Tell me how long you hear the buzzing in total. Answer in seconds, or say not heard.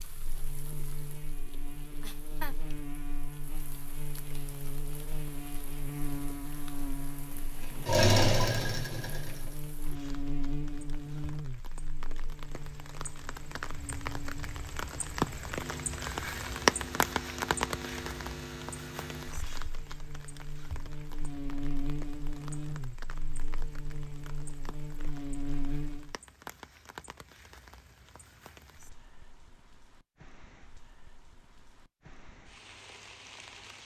26 s.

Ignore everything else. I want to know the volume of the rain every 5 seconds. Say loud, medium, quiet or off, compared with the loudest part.
quiet, quiet, quiet, loud, quiet, quiet, quiet.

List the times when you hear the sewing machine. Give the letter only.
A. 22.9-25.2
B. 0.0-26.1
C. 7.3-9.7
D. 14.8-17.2
C.